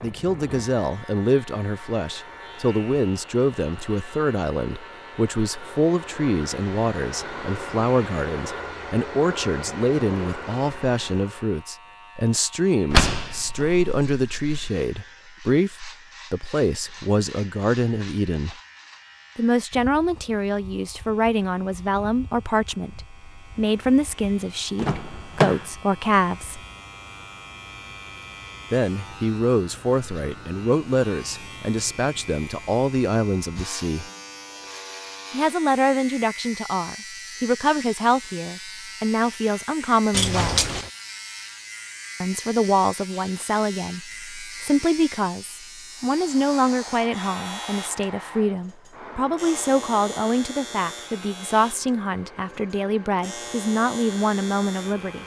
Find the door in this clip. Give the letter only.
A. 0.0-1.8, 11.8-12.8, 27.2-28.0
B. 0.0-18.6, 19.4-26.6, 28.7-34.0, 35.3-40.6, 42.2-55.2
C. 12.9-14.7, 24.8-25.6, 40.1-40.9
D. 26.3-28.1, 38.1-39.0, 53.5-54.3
C.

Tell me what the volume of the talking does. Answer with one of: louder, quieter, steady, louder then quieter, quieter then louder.
steady.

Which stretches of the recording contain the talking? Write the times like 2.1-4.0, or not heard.
0.0-18.6, 19.4-26.6, 28.7-34.0, 35.3-40.6, 42.2-55.2.